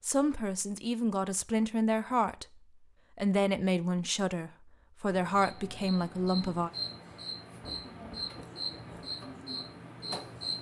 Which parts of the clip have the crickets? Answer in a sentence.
The crickets can be heard from 5.1 to 10.5 s.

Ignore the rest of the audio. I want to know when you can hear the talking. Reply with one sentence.
You can hear the talking from 0.0 to 2.5 s and from 3.1 to 6.7 s.